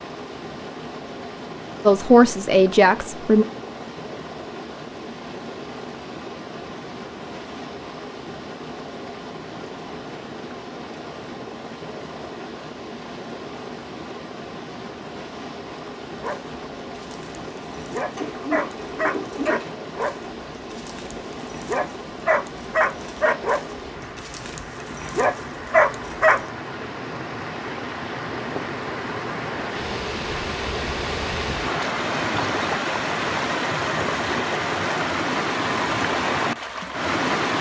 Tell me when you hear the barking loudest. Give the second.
26 s.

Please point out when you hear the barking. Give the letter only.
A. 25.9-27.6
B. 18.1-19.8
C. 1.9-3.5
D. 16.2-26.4
D.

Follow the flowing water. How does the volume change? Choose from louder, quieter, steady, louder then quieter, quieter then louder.
louder.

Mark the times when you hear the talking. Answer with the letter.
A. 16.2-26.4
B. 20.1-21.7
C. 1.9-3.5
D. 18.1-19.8
C.